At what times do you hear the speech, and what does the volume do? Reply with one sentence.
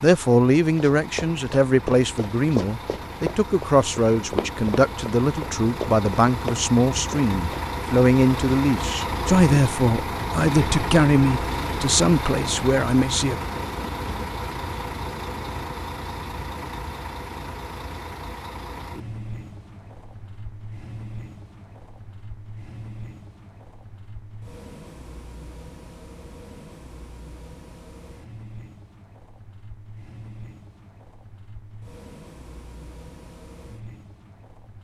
The speech can be heard from 0.0 to 13.4 s, at a steady volume.